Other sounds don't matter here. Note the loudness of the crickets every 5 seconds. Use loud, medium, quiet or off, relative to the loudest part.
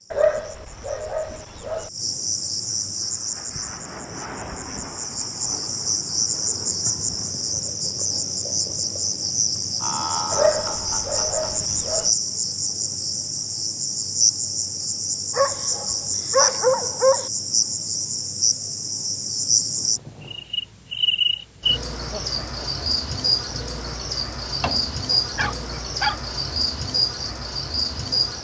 medium, loud, loud, loud, loud, loud.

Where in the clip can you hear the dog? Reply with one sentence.
You can hear the dog from 0.1 to 1.9 s, from 10.3 to 12.1 s, from 15.3 to 17.3 s and from 24.6 to 26.2 s.